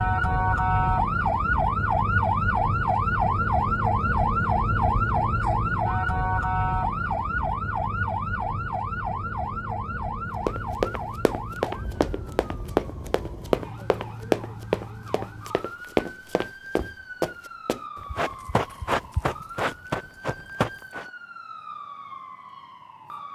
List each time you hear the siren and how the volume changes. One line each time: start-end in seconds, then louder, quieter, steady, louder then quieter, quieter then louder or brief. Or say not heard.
0.0-23.2 quieter.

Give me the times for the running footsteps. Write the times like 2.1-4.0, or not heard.
10.4-21.1.